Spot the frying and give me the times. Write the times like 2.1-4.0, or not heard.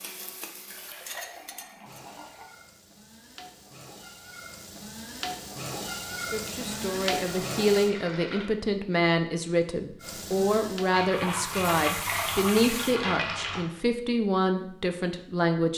0.0-7.9, 10.0-13.0.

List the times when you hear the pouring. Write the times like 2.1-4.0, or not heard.
0.7-2.5, 6.5-8.4, 10.9-13.7.